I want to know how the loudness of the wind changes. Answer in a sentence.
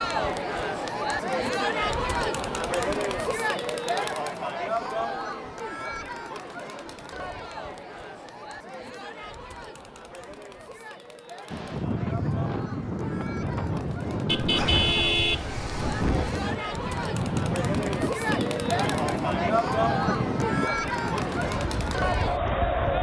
The loudness of the wind stays about the same.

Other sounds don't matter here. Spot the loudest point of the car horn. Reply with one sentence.
The volume of the car horn peaks at 15 seconds.